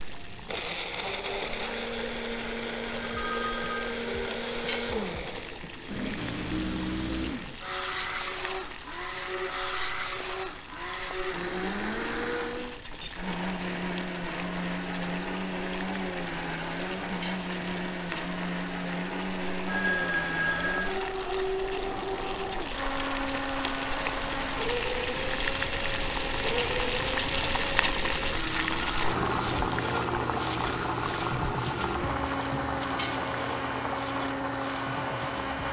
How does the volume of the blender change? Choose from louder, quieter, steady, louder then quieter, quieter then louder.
steady.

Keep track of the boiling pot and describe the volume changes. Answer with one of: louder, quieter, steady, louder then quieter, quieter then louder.
louder.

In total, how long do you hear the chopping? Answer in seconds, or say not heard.
not heard.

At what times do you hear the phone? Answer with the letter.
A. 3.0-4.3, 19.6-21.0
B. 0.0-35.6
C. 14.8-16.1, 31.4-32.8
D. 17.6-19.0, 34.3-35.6
A.